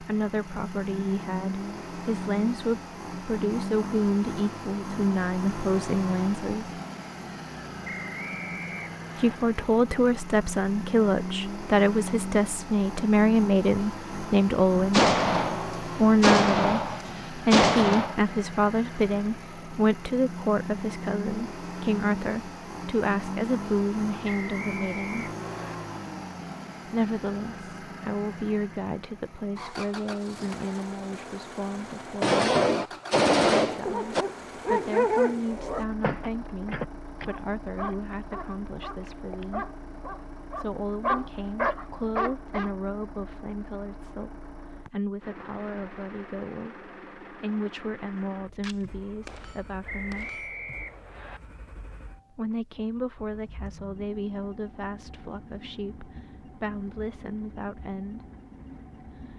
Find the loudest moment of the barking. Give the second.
35 s.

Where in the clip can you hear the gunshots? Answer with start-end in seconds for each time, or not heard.
14.9-18.1, 32.2-34.2, 48.6-50.5.